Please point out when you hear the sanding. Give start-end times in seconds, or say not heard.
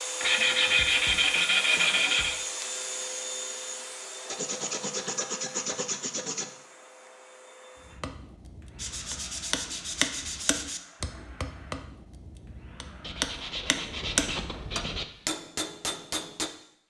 0.2-2.4, 4.2-6.5, 8.8-10.8, 13.0-15.1.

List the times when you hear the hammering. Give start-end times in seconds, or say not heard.
7.9-16.5.